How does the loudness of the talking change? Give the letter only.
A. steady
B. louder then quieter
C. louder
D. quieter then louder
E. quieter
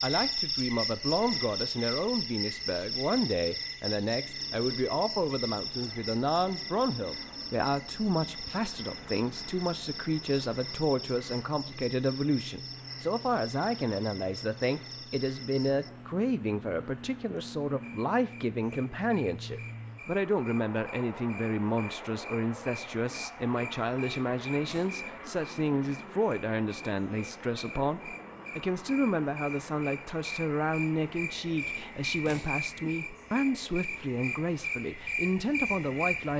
A.